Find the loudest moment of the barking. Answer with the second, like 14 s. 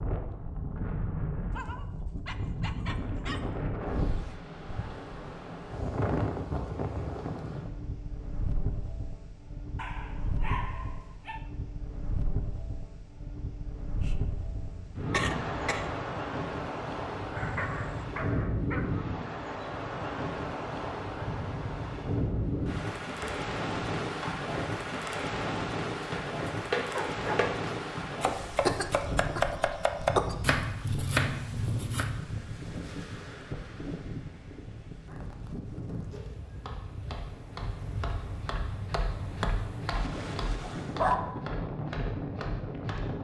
41 s.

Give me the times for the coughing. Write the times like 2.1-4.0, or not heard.
13.9-15.9, 28.5-30.4.